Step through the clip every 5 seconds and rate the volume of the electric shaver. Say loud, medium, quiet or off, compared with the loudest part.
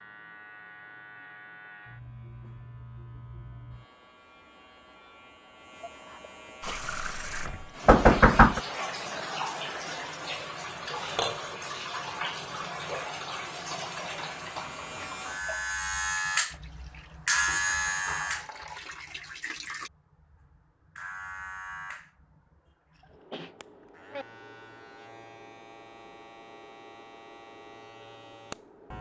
quiet, quiet, quiet, loud, quiet, quiet.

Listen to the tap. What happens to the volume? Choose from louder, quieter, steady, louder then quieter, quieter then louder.
quieter.